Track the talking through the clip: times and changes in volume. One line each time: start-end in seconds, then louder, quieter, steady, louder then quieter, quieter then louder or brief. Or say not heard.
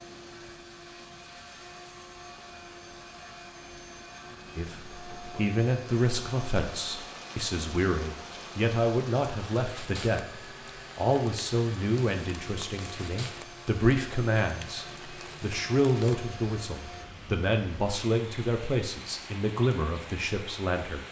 4.5-21.0 steady.